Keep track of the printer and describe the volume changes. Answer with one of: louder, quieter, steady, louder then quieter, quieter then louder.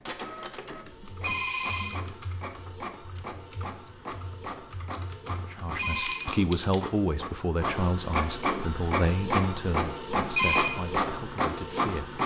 louder.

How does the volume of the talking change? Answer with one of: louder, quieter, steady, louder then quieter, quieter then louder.
quieter.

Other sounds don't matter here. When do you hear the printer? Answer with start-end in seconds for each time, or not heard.
0.0-12.2.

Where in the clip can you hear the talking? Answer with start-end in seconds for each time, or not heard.
5.4-12.2.